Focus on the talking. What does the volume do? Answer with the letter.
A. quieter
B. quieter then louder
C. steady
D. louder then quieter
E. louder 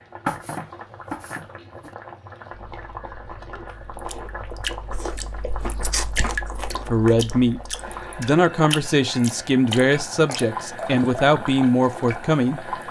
C.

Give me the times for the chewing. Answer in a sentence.
The chewing can be heard from 2.5 to 8.2 s.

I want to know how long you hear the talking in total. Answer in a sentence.
You can hear the talking for 6 seconds altogether.